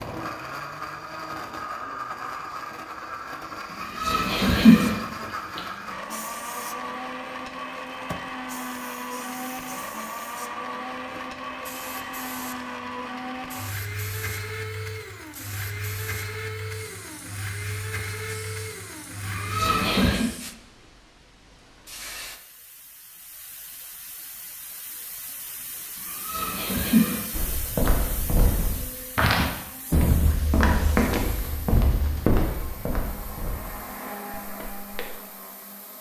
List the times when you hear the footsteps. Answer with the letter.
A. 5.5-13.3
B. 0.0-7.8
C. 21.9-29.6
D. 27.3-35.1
D.